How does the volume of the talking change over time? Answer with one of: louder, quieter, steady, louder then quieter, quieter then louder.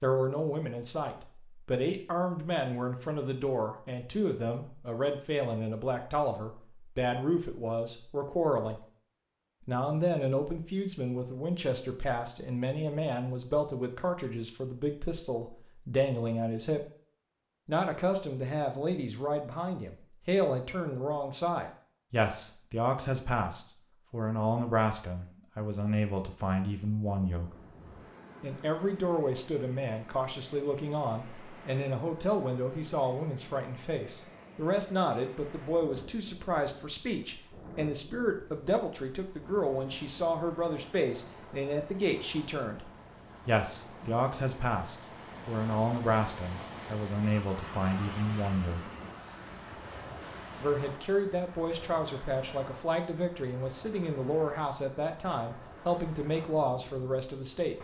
steady.